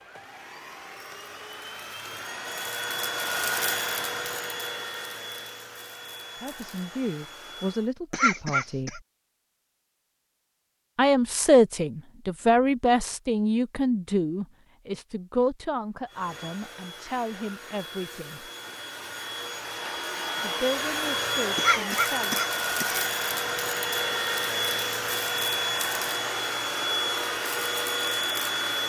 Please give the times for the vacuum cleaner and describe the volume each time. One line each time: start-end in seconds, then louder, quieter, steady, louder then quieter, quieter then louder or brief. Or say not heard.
0.0-8.0 louder then quieter
16.1-28.8 louder.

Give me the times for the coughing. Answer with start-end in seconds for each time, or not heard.
8.1-9.0, 21.6-23.1.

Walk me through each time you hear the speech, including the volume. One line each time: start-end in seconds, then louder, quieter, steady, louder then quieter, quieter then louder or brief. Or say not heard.
6.4-9.0 brief
10.9-18.5 quieter
20.4-22.4 brief.